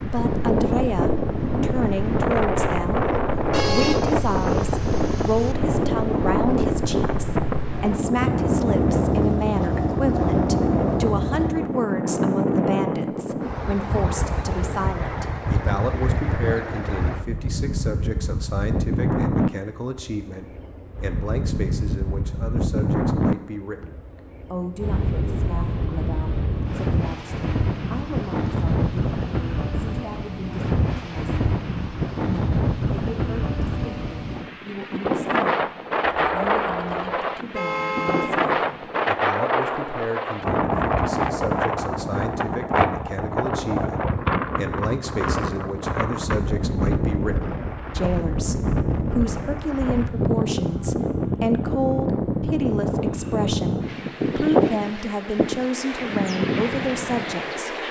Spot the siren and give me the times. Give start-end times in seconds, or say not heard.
not heard.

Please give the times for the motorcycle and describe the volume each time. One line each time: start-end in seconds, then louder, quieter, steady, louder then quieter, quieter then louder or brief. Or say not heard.
0.0-11.6 louder.